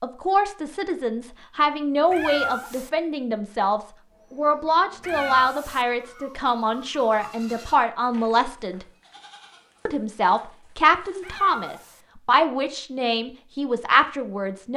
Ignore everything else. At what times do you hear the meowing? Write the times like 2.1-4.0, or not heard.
2.1-2.9, 5.0-5.8, 11.2-12.0.